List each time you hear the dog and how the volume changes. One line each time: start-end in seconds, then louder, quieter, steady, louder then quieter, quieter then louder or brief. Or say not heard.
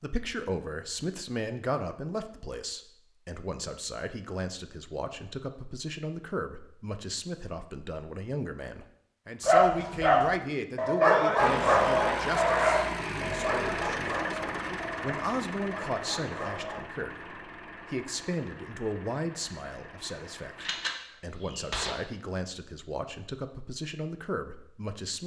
9.4-16.8 quieter.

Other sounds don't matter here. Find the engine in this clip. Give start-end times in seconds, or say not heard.
11.3-20.9.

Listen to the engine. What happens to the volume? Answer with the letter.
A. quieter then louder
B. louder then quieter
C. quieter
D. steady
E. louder
C.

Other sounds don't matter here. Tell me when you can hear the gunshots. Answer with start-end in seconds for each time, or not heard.
20.6-21.9.